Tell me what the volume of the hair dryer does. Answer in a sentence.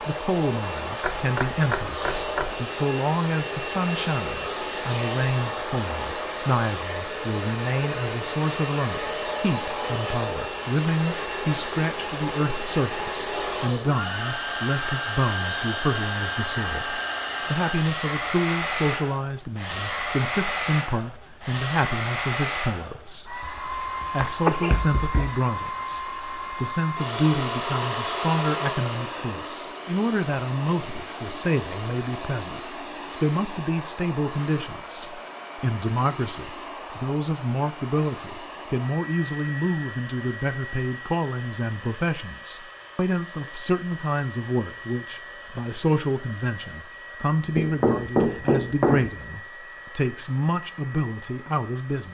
The loudness of the hair dryer goes down.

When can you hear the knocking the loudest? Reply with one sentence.
The loudest moment of the knocking is at 48 seconds.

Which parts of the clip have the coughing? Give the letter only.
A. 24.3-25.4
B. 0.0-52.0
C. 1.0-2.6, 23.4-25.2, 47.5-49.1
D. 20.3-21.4
A.